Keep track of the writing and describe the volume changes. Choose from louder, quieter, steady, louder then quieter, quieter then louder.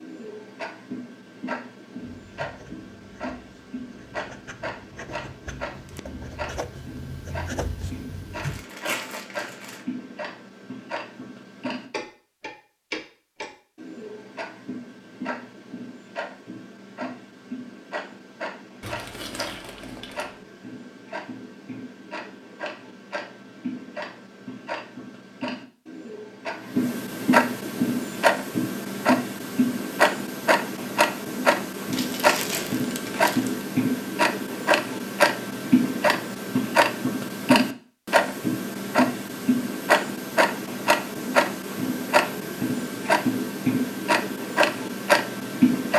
louder.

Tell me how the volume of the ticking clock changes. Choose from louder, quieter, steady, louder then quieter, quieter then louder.
louder.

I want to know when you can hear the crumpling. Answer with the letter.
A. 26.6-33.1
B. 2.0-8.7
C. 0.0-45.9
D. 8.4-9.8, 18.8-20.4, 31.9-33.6
D.